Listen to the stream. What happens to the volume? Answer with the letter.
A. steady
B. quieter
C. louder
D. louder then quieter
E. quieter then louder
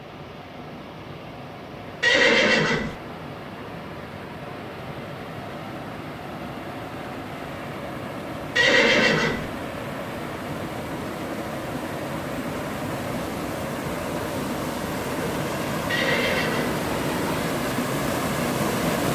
C.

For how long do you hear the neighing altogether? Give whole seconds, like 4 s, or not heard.
3 s.